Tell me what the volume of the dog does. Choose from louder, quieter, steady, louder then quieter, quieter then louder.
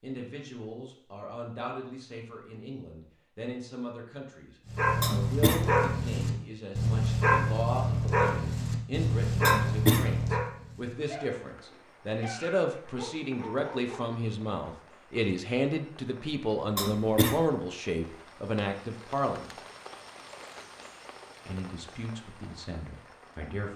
quieter.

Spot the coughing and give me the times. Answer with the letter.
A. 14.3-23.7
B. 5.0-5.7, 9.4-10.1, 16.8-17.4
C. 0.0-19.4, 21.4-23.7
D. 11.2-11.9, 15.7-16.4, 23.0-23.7
B.